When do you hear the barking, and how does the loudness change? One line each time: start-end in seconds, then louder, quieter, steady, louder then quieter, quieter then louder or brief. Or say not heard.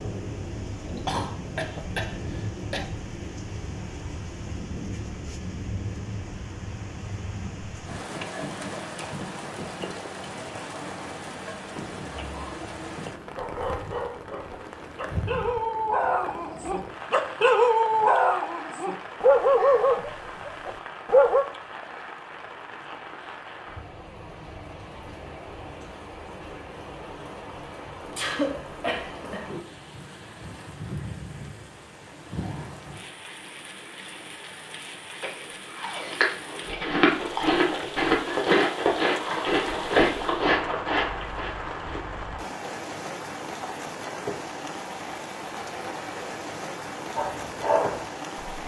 13.3-21.4 louder
47.1-48.6 brief.